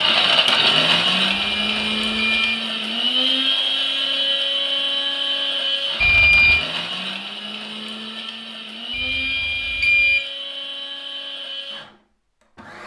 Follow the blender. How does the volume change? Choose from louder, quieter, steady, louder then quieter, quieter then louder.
quieter.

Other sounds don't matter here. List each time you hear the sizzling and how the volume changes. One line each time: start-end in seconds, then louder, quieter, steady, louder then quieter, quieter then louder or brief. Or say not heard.
not heard.